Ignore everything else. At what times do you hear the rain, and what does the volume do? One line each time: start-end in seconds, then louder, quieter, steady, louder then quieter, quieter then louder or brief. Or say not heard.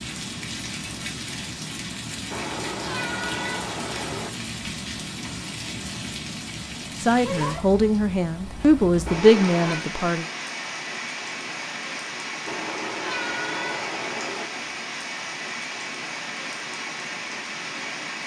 0.0-18.2 steady.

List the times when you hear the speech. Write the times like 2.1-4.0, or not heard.
7.0-10.2.